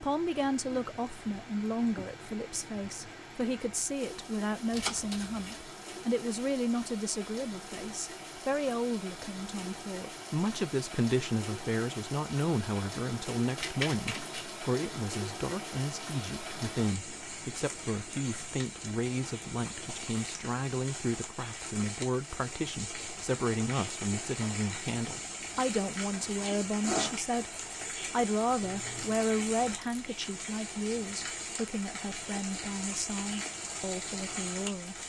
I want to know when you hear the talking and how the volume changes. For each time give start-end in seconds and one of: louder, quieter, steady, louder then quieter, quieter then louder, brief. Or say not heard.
0.0-35.0 steady.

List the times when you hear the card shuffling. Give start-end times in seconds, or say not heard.
4.7-5.6, 13.6-14.4, 28.6-30.1.